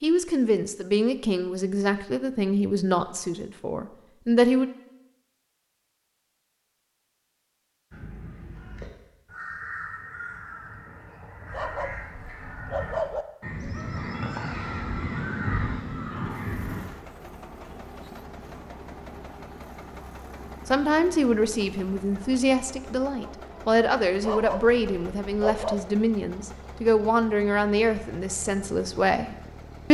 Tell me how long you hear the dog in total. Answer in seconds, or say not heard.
3 s.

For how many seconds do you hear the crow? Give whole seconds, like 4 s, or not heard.
9 s.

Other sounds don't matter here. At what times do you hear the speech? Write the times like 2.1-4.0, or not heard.
0.0-4.7, 20.6-29.8.